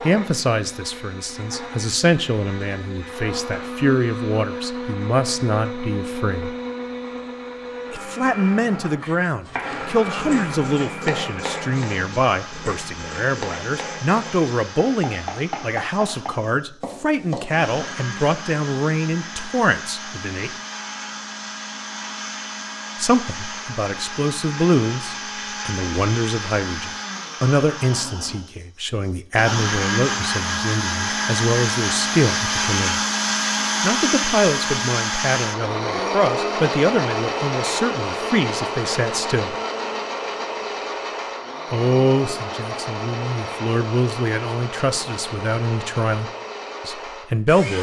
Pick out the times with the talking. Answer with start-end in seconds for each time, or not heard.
0.0-6.5, 7.9-20.6, 22.9-33.0, 33.8-39.5, 41.7-47.7.